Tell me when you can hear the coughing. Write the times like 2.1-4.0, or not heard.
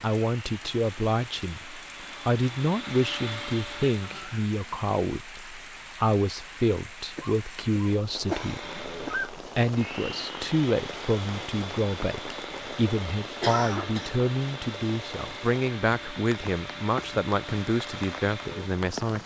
3.9-4.5, 7.2-9.3, 13.4-14.1.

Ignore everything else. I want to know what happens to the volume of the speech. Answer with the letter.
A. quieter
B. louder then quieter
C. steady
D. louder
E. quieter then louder
C.